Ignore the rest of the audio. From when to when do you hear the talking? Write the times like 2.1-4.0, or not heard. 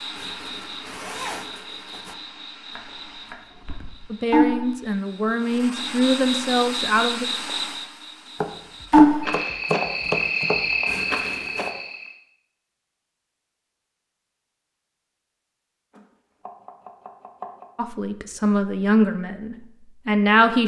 4.1-7.2, 17.8-20.6.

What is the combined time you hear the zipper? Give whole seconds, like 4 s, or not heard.
3 s.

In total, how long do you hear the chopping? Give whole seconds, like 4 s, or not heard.
6 s.